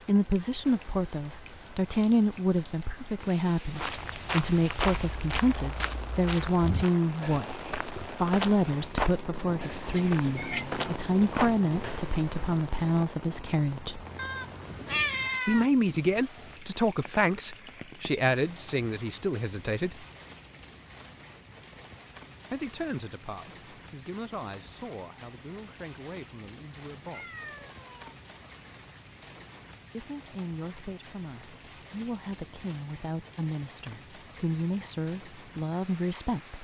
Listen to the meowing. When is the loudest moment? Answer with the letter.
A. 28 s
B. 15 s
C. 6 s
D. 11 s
B.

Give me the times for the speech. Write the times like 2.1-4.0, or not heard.
0.1-14.1, 15.4-20.1, 22.5-27.4, 29.9-36.5.